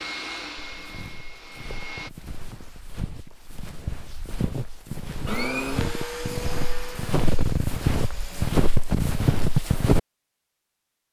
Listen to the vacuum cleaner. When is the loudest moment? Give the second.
6 s.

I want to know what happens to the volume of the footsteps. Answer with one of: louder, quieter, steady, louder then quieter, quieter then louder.
louder.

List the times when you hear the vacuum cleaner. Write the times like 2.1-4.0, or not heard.
0.0-2.1, 5.2-8.5.